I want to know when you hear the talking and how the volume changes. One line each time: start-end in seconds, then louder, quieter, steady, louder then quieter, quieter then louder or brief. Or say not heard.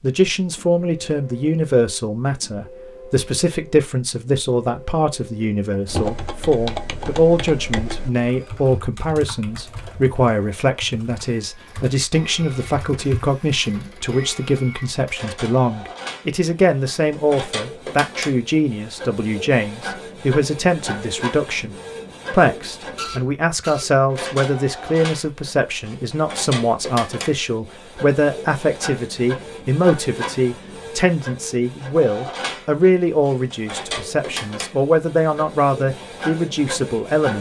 0.0-37.3 steady.